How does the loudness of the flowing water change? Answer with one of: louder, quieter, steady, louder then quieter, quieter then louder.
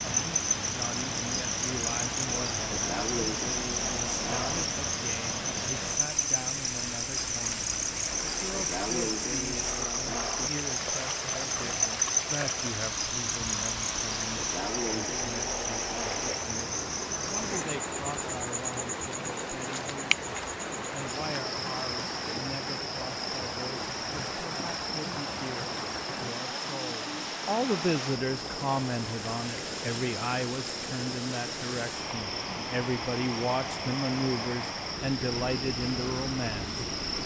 steady.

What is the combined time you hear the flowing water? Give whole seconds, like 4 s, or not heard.
37 s.